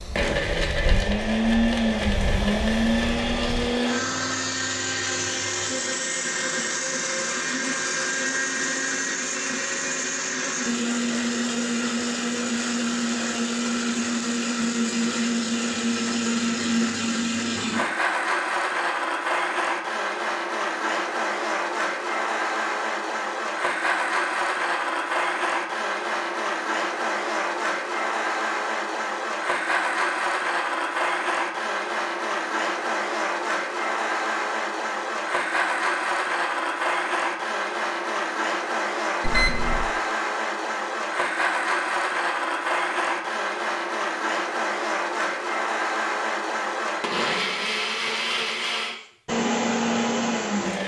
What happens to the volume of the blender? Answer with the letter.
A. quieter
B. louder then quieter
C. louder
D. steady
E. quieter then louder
D.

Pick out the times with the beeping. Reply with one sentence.
The beeping can be heard from 39.2 to 40.0 s.